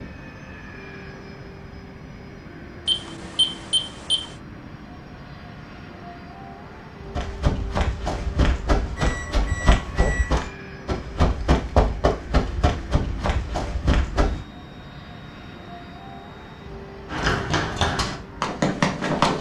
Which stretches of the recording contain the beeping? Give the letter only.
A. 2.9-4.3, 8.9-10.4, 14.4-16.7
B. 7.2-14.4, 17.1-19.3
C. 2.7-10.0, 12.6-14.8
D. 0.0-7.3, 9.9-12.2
A.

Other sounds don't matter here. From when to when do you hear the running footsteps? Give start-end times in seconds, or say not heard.
7.2-14.4, 17.1-19.3.